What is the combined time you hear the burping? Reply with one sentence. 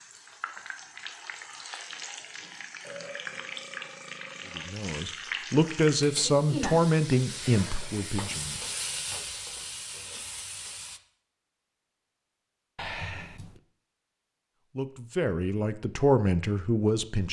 The burping can be heard for 3 seconds in total.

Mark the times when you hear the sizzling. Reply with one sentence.
The sizzling can be heard from 0.0 to 11.0 s.